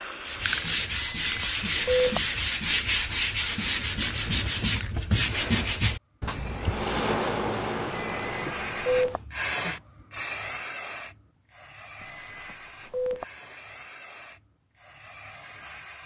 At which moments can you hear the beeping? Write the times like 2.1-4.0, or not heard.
0.9-2.2, 7.9-9.2, 12.0-13.2.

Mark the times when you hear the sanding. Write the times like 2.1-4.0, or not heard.
0.2-9.2.